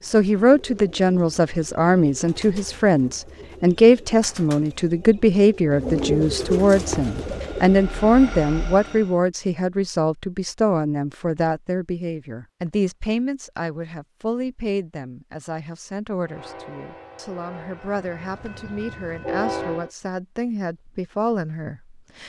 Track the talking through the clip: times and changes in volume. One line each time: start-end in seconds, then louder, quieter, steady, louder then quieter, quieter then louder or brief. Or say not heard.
0.1-22.2 quieter.